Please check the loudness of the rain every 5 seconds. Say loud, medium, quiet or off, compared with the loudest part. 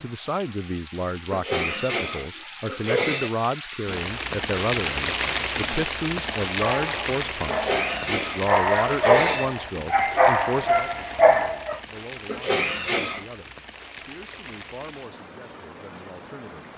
loud, loud, medium, quiet.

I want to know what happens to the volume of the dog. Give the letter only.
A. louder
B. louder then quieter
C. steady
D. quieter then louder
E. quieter
A.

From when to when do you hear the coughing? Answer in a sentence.
You can hear the coughing from 1.3 to 3.3 s, from 7.5 to 9.5 s and from 12.2 to 13.2 s.